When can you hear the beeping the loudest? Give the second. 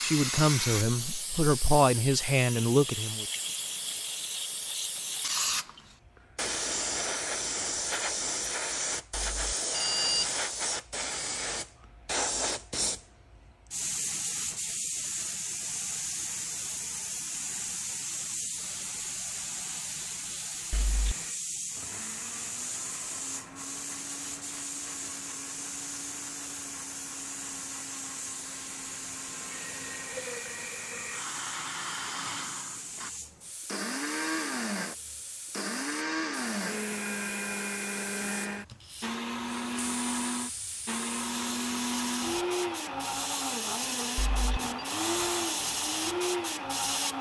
10 s.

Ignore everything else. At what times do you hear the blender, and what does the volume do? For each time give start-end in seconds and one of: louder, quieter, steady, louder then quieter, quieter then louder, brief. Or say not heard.
21.1-47.1 louder.